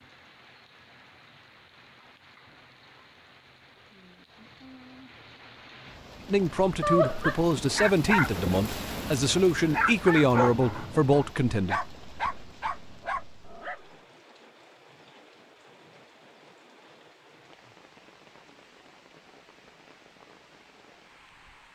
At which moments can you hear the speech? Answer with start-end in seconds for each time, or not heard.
6.3-11.8.